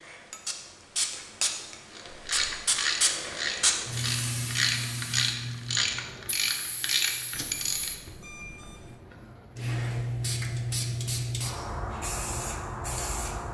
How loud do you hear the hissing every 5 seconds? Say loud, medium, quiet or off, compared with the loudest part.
loud, medium, loud.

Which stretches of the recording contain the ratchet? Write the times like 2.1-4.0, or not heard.
1.9-7.9.